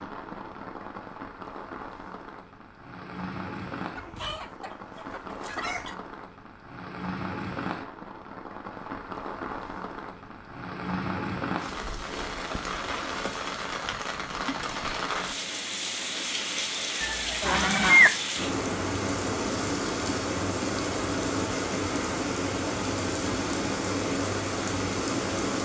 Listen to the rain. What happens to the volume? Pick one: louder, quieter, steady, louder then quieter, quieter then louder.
louder.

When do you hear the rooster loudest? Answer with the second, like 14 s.
18 s.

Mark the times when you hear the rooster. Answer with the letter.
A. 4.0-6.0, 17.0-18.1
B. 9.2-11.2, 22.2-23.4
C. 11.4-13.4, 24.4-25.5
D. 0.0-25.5
A.